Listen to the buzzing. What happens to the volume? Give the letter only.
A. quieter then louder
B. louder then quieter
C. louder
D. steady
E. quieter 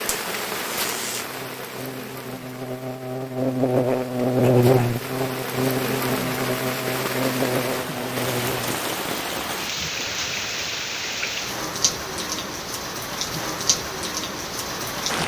B.